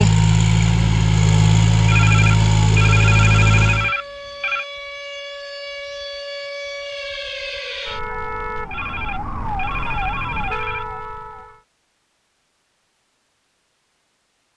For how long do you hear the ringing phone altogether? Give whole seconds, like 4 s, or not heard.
5 s.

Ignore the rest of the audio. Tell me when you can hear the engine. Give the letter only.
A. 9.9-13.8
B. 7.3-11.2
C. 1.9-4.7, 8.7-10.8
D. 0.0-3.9
D.